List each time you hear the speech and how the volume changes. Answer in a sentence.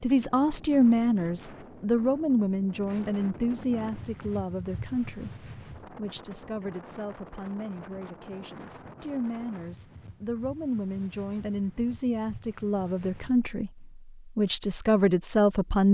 The speech can be heard from 0.0 to 15.8 s, getting quieter then louder.